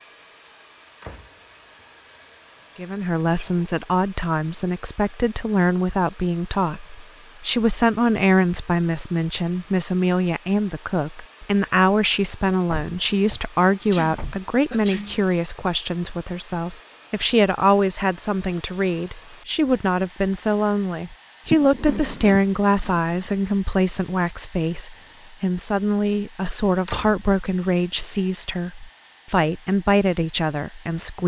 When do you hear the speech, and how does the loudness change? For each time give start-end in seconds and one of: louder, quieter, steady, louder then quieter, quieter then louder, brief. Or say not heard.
2.8-31.2 steady.